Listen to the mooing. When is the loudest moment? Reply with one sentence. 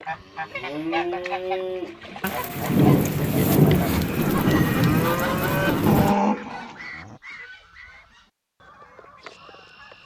The loudest moment of the mooing is at 6 seconds.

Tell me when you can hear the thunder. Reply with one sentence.
The thunder can be heard from 2.2 to 6.2 s.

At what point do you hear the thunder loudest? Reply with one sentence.
The loudest moment of the thunder is at 4 seconds.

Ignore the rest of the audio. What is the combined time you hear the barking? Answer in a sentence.
You can't hear the barking here.